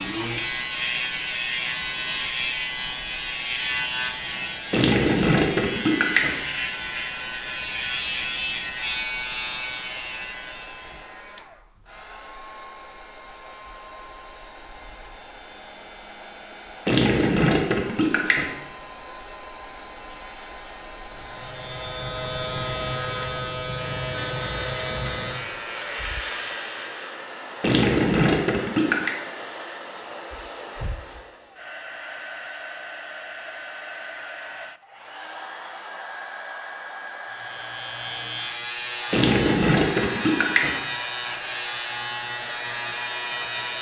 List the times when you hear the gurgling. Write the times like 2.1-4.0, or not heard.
4.7-6.3, 16.9-18.5, 27.6-29.1, 39.1-40.8.